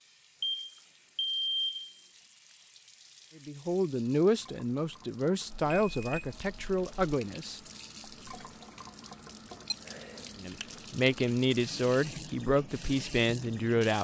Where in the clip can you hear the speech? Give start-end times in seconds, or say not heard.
3.4-7.6, 10.3-13.9.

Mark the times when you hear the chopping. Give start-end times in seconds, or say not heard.
not heard.